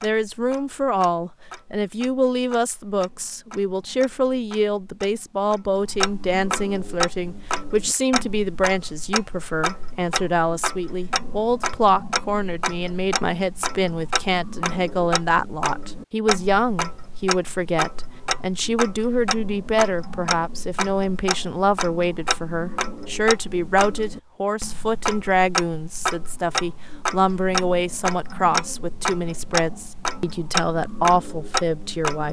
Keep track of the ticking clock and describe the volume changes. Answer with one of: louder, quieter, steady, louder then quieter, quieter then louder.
louder.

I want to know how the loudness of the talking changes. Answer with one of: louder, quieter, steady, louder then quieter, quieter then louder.
steady.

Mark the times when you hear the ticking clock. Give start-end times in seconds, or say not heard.
0.0-32.2.